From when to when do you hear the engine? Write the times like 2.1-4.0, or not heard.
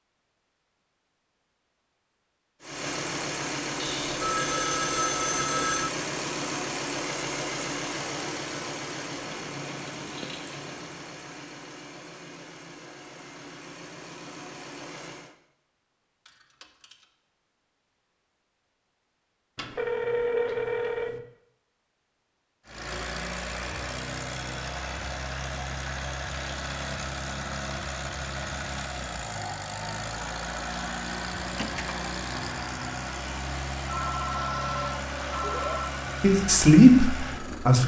2.6-15.3, 22.6-37.8.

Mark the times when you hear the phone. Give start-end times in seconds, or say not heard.
3.8-5.9, 19.6-21.2, 33.9-35.9.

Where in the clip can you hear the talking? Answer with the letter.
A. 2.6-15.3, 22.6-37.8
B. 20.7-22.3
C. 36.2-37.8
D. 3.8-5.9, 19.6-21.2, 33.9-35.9
C.